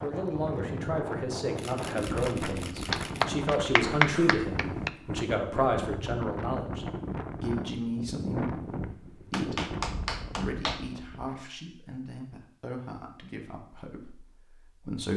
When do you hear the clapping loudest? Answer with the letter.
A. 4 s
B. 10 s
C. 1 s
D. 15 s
A.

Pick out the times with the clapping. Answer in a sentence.
The clapping can be heard from 2.9 to 4.9 s and from 9.3 to 10.8 s.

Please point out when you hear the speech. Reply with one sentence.
The speech can be heard from 0.0 to 15.1 s.